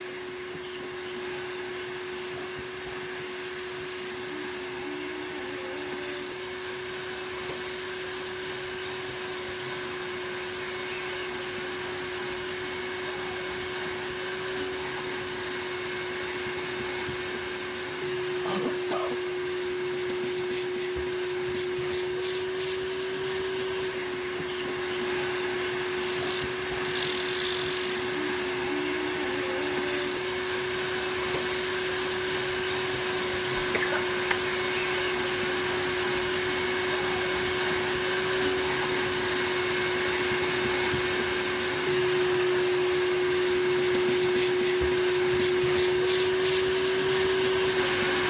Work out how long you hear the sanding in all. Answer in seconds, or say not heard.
not heard.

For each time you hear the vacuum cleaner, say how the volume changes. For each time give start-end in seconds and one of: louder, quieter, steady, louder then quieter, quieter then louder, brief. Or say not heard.
0.0-48.2 louder.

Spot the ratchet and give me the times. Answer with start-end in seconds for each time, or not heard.
26.0-27.9.